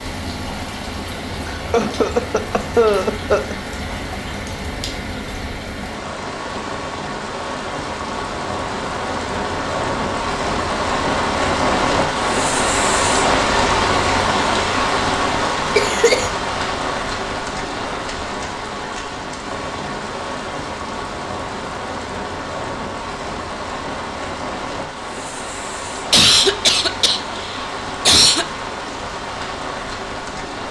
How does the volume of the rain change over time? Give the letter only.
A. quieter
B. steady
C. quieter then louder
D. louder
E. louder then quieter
E.